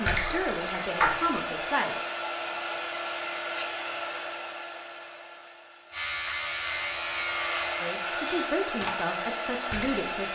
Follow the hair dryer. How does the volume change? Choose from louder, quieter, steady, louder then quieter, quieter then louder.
quieter then louder.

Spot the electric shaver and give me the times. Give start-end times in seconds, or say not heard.
5.9-8.5.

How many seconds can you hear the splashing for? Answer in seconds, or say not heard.
3 s.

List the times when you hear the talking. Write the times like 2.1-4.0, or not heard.
0.0-1.9, 7.8-10.3.